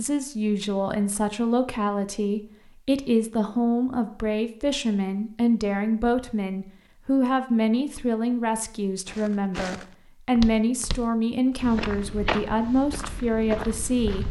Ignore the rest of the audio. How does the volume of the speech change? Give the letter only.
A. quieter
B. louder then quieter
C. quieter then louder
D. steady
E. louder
D.